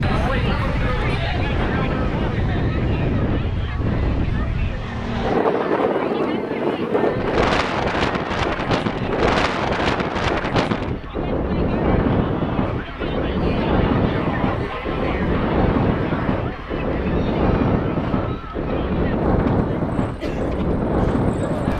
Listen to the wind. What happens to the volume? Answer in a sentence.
The volume of the wind stays about the same.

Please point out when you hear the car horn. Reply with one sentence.
The car horn can't be heard in this clip.